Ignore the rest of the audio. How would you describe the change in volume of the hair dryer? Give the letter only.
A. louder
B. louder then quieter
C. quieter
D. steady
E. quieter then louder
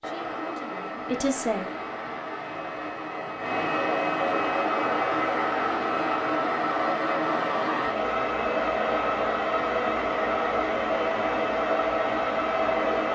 A.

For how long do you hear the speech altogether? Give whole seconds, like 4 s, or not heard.
2 s.